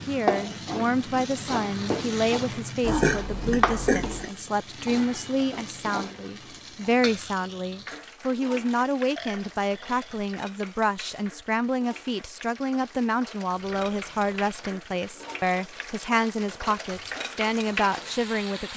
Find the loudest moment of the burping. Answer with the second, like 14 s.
3 s.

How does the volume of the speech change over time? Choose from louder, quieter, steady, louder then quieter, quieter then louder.
steady.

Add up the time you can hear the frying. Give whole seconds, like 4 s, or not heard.
19 s.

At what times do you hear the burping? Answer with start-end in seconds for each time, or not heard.
2.8-4.3, 9.2-10.2, 13.5-15.4.